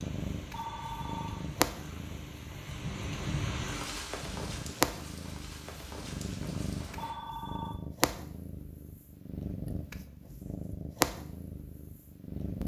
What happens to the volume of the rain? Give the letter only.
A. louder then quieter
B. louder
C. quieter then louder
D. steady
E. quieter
A.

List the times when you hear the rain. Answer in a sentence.
The rain can be heard from 0.0 to 7.2 s.